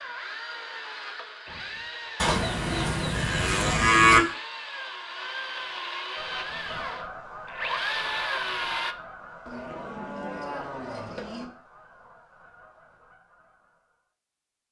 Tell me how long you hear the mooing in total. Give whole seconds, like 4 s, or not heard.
4 s.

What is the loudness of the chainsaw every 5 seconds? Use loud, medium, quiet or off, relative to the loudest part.
medium, loud, off.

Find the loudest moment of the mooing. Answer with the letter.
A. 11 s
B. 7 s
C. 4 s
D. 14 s
C.